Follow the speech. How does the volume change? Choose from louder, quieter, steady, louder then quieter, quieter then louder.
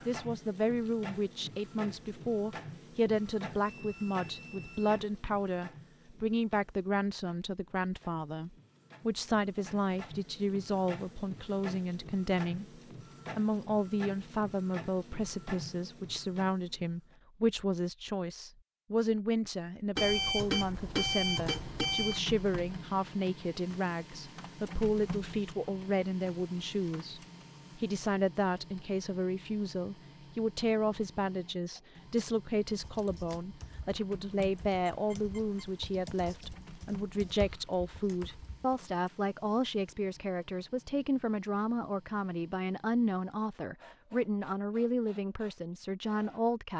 steady.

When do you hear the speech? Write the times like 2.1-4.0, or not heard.
0.1-46.7.